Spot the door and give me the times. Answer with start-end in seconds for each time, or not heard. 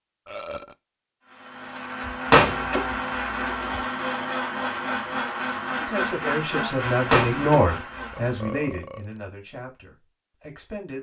2.0-3.8, 7.1-8.3.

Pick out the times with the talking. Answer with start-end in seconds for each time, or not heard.
5.8-10.9.